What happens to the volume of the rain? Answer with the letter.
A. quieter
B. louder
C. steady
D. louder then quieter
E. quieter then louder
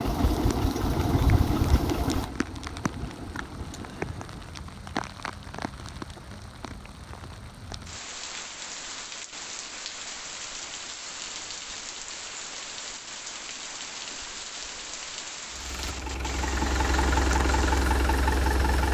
C.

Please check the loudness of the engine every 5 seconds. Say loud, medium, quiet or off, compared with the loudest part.
loud, off, off, loud.